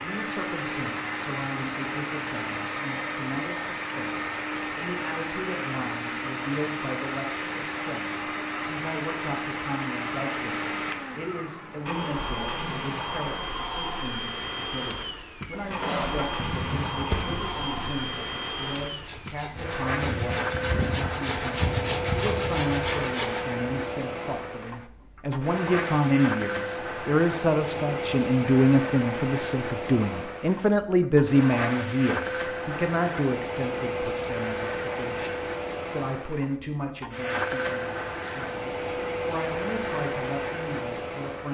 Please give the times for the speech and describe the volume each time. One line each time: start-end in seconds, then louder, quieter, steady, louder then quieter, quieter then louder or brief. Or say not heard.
0.0-41.4 louder then quieter.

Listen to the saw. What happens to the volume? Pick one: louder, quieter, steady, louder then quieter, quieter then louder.
quieter then louder.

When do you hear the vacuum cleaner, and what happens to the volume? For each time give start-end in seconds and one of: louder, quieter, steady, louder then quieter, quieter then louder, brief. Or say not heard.
0.0-41.4 steady.